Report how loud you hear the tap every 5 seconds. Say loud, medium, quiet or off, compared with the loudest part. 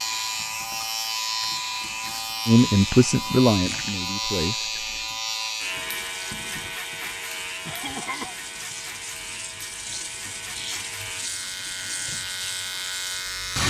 medium, medium, loud.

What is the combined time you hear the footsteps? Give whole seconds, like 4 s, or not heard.
not heard.